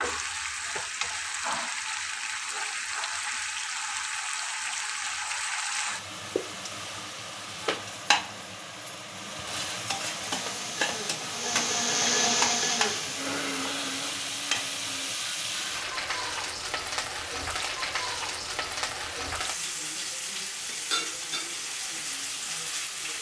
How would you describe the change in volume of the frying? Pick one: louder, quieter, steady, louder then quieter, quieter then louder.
steady.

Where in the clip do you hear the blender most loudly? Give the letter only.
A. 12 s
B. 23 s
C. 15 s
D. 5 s
A.